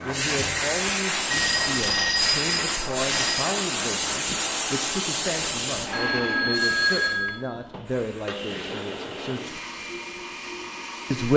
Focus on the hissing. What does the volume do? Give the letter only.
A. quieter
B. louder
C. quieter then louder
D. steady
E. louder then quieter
A.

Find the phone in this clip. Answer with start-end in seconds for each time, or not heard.
1.3-3.5, 5.9-7.5.